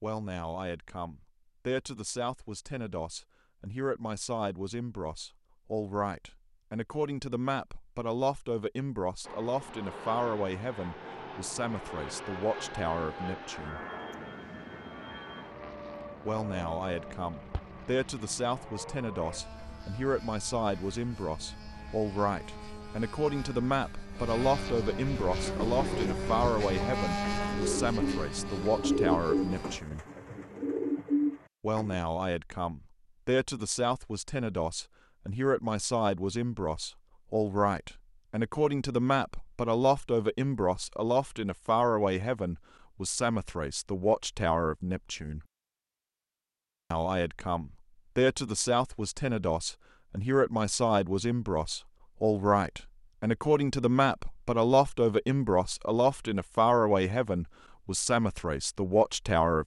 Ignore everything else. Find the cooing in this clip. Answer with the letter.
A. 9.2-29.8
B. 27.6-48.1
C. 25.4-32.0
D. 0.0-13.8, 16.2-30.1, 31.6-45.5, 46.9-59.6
C.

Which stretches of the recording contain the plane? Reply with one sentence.
The plane can be heard from 9.2 to 29.8 s.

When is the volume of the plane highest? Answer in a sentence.
The loudest moment of the plane is at 27 seconds.